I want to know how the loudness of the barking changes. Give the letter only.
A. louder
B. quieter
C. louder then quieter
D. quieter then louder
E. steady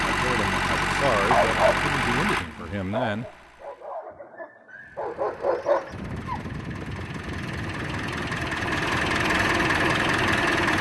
D.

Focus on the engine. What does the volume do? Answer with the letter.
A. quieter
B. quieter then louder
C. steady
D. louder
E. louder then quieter
B.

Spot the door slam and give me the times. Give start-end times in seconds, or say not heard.
not heard.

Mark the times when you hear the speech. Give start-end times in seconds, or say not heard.
0.0-3.2.